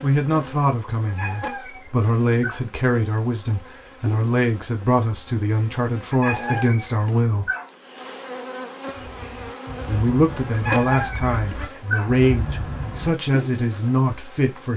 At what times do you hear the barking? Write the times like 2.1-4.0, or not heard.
1.1-2.6, 6.1-7.7, 10.5-12.1.